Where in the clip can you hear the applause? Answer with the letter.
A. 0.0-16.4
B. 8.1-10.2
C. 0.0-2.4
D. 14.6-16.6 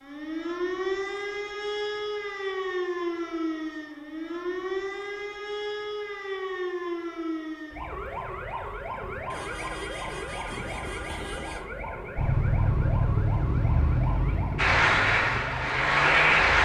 D.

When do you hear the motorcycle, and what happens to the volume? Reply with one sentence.
The motorcycle can be heard from 12.2 to 16.6 s, getting quieter.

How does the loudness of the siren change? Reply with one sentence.
The loudness of the siren goes down.